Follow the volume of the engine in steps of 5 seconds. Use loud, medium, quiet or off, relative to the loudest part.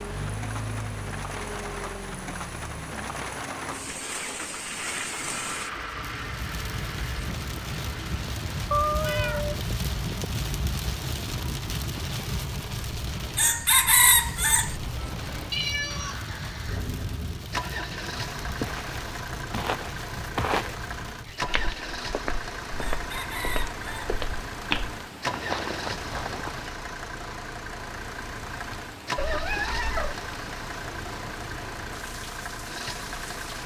loud, loud, medium, loud, loud, loud, loud.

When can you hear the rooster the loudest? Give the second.
14 s.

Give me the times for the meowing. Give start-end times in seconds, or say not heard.
8.7-9.6, 15.5-16.2, 29.1-30.1.